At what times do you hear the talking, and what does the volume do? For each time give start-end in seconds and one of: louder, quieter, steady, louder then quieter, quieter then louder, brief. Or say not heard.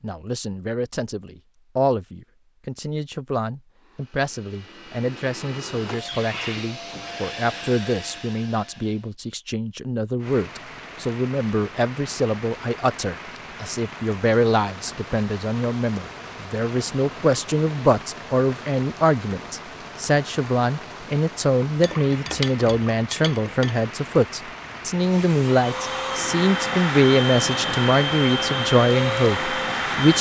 0.0-30.1 louder.